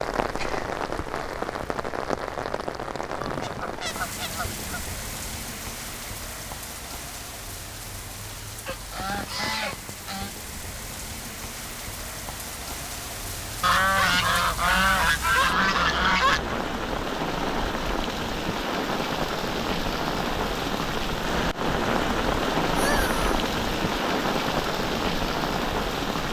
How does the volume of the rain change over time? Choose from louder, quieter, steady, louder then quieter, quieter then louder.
quieter then louder.